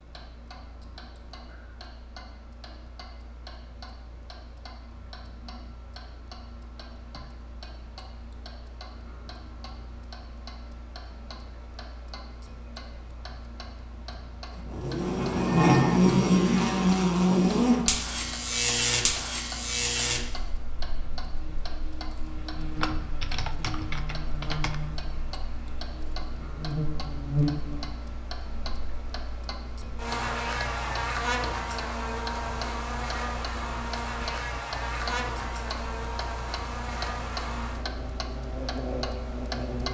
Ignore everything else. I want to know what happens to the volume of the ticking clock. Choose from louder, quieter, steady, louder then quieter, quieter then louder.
louder.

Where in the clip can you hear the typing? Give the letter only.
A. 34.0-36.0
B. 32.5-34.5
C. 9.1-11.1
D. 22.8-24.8
D.